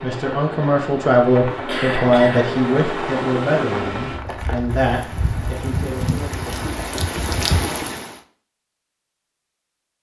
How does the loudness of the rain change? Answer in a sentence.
The volume of the rain goes up.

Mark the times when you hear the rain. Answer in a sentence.
The rain can be heard from 0.0 to 8.2 s.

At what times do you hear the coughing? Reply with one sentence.
The coughing can be heard from 1.6 to 2.5 s and from 6.5 to 7.1 s.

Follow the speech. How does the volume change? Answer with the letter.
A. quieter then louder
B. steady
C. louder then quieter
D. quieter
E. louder
D.